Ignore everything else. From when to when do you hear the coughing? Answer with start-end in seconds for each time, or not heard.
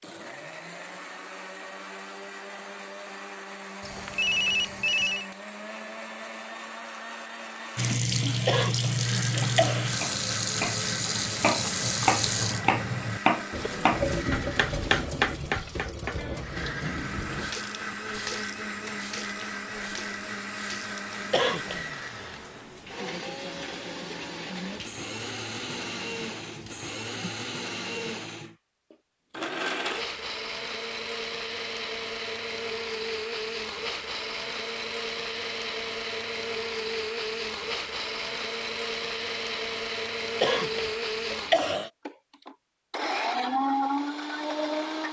8.4-9.8, 21.3-21.9, 40.4-41.9.